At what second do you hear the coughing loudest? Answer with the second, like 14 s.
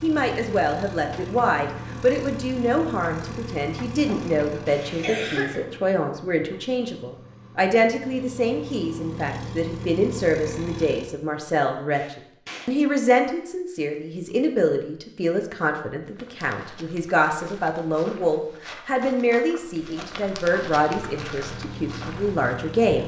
5 s.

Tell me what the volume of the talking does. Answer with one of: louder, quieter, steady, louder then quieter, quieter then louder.
steady.